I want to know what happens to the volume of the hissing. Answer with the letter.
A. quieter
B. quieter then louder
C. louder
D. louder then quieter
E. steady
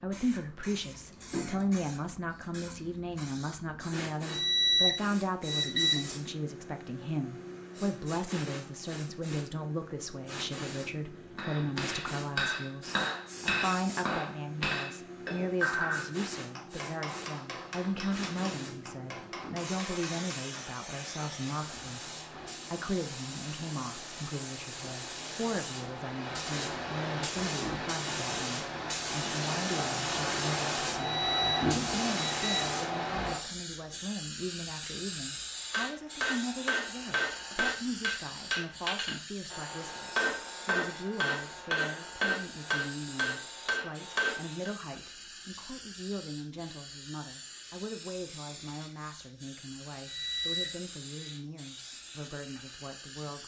D.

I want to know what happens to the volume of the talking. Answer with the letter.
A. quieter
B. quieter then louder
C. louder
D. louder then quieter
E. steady
A.